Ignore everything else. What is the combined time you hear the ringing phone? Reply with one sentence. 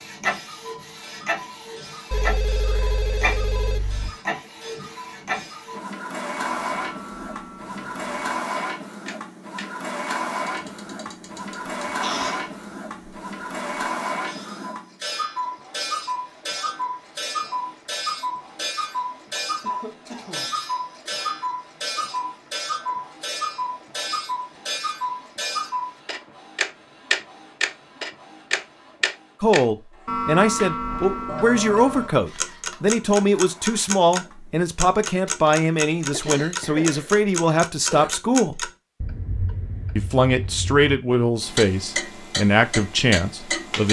The ringing phone can be heard for 3 seconds in total.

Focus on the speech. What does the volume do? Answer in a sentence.
The loudness of the speech stays about the same.